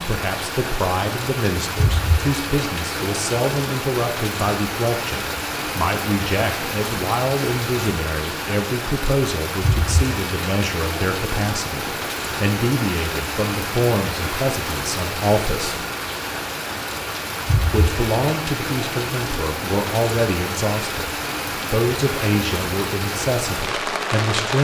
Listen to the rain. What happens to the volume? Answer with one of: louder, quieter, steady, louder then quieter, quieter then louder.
steady.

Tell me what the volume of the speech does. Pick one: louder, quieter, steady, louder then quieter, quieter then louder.
steady.